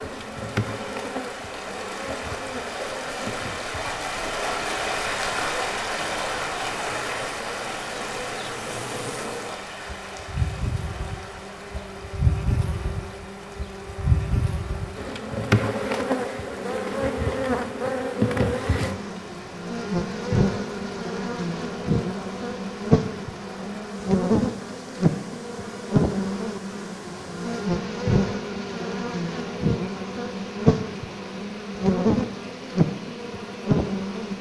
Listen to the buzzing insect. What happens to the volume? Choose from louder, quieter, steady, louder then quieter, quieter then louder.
louder.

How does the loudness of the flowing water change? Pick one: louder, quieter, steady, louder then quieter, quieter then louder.
quieter.